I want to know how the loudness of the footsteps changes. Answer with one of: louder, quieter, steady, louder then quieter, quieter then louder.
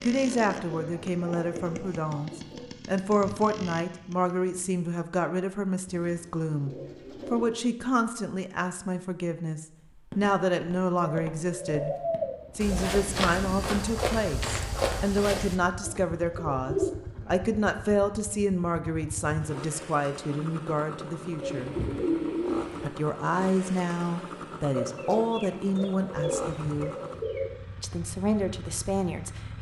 louder.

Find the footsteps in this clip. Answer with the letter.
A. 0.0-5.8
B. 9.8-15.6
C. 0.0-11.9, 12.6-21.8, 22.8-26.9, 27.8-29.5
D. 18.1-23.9
B.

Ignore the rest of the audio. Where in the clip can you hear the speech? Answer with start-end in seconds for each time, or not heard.
0.0-11.9, 12.6-21.8, 22.8-26.9, 27.8-29.5.